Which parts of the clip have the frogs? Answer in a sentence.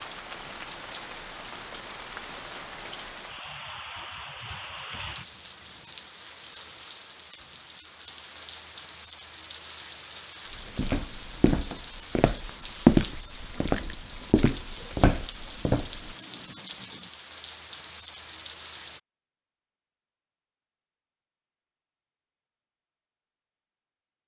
The frogs can't be heard in this clip.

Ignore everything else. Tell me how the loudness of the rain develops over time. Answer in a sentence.
The volume of the rain stays about the same.